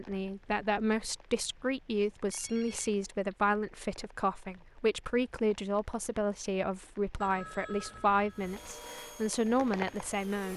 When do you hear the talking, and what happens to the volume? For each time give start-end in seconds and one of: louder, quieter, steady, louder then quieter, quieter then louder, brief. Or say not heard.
0.0-10.5 steady.